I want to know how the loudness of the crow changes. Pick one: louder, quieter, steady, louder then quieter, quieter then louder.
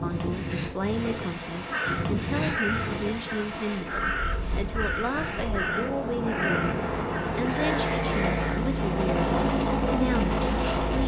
steady.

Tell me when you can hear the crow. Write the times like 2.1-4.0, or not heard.
1.7-8.6.